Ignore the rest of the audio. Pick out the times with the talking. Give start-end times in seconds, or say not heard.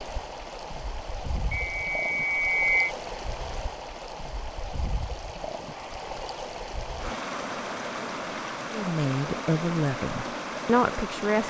8.7-11.4.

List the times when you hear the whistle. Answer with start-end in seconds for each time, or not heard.
1.5-3.0.